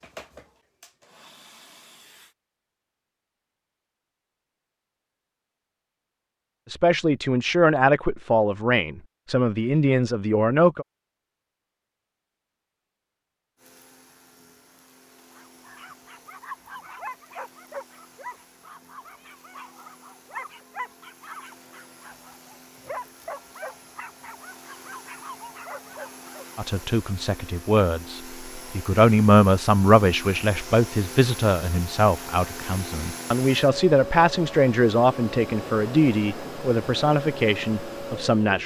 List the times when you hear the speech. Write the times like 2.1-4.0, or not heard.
6.7-10.8, 26.6-38.6.